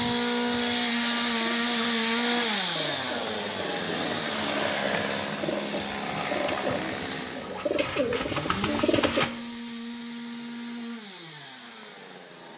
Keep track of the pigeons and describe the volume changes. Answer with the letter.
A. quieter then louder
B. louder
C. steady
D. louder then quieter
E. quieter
B.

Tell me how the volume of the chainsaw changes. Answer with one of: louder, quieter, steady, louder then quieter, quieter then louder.
quieter.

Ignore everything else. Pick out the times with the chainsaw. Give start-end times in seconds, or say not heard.
0.0-12.5.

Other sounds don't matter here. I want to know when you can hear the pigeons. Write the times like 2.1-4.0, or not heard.
0.0-9.3.